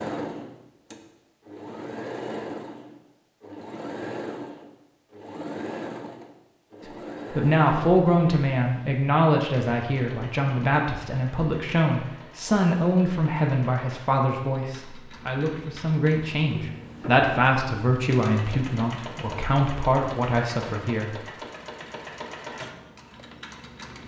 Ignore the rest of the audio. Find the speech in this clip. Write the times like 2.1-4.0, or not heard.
7.3-21.2.